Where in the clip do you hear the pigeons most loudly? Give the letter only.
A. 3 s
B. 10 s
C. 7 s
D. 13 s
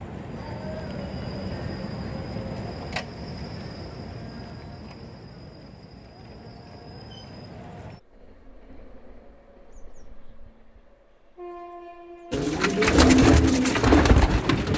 D.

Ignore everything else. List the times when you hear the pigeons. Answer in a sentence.
You can hear the pigeons from 12.3 to 14.7 s.